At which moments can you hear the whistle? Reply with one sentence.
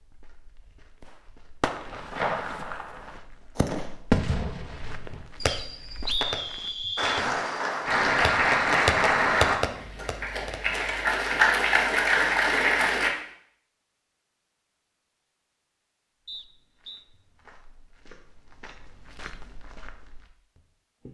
The whistle can be heard from 5.5 to 7.2 s and from 16.2 to 17.1 s.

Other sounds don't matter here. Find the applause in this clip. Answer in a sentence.
You can hear the applause from 7.0 to 13.1 s.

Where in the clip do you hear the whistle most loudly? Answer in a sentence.
The loudest moment of the whistle is at 6 seconds.